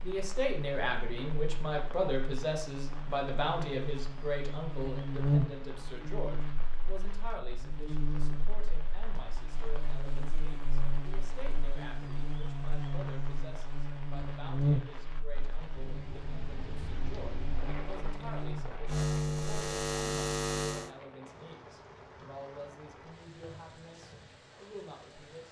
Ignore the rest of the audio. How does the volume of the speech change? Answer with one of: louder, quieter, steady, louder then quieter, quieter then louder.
quieter.